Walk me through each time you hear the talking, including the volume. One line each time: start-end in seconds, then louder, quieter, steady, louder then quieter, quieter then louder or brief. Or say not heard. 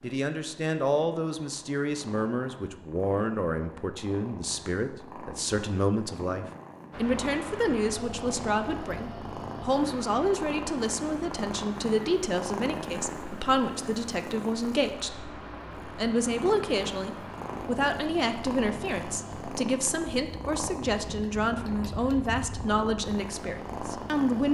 0.0-24.4 steady.